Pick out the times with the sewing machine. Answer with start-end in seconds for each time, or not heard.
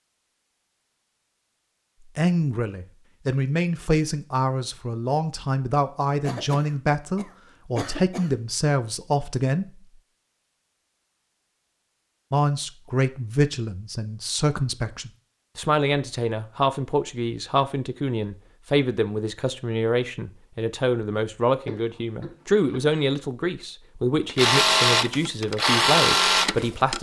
24.2-26.9.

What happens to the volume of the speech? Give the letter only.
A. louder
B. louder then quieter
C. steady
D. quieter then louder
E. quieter
C.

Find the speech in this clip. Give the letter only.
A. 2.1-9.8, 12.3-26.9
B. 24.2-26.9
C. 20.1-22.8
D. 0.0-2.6
A.